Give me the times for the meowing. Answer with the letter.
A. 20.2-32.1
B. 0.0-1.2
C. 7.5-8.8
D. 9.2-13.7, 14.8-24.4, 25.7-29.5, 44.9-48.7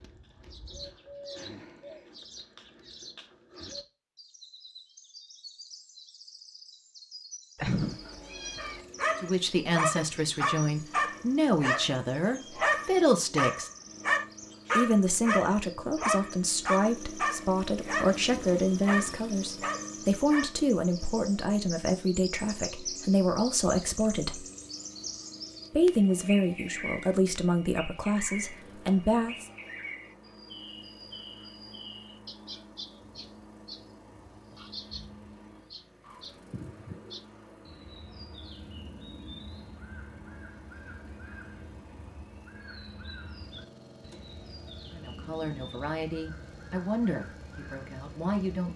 C.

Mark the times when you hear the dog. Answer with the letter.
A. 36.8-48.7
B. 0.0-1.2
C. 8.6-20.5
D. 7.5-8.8
C.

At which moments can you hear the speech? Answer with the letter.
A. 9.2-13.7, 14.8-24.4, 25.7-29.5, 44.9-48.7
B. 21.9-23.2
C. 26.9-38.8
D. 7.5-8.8
A.